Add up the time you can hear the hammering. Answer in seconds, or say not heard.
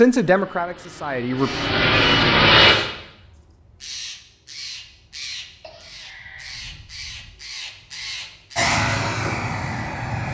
not heard.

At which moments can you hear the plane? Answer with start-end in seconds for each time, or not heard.
0.2-2.8, 8.6-10.2.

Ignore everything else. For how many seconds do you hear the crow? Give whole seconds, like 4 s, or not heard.
7 s.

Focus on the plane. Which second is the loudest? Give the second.
2 s.